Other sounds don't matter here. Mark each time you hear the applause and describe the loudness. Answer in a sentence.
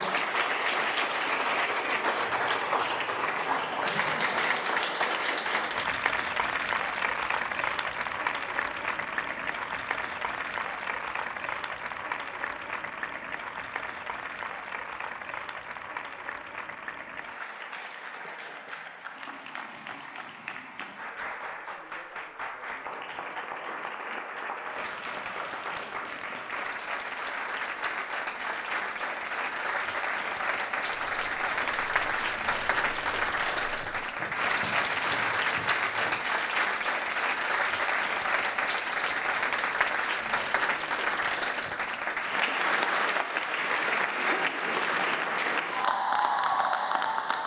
The applause can be heard from 0.0 to 47.4 s, getting quieter then louder.